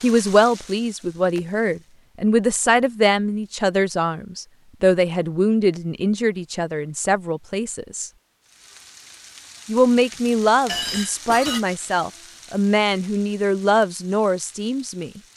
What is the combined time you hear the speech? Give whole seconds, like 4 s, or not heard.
14 s.